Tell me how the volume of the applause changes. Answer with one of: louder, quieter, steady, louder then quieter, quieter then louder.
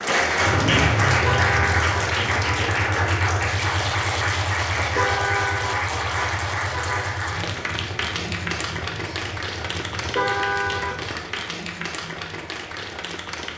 quieter.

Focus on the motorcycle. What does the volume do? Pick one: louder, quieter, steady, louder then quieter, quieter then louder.
quieter.